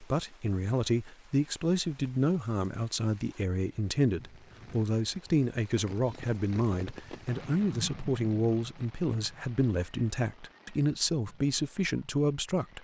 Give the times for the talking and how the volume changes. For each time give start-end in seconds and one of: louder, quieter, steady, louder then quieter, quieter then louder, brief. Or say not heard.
0.0-12.7 steady.